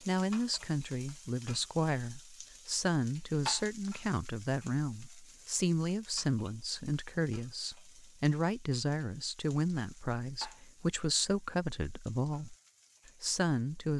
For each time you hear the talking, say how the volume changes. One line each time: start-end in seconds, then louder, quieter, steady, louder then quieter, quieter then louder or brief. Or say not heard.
0.1-13.9 steady.